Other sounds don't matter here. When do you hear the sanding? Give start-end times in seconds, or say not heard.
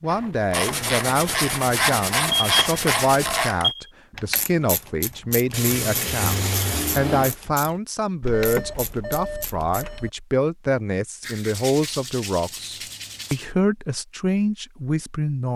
0.5-3.5, 5.5-7.3, 11.2-13.5.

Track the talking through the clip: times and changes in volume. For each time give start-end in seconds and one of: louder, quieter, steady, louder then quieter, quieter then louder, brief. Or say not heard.
0.0-15.5 steady.